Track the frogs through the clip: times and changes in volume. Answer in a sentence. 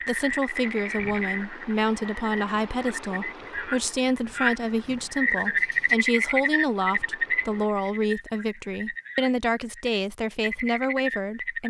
The frogs can be heard from 0.0 to 11.6 s, getting louder then quieter.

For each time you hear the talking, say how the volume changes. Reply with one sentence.
You can hear the talking from 0.1 to 11.6 s, at a steady volume.